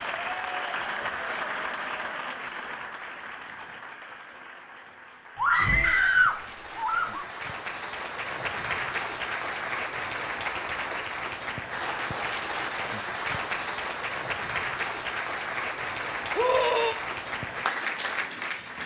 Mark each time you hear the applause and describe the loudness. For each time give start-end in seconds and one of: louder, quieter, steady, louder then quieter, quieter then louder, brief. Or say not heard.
0.0-18.8 quieter then louder.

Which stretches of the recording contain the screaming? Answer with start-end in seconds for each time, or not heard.
5.3-7.2, 16.4-16.9.